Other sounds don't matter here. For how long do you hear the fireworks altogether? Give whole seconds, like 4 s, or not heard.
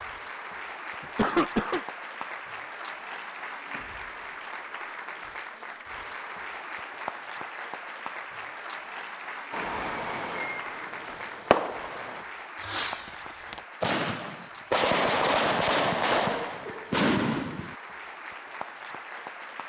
8 s.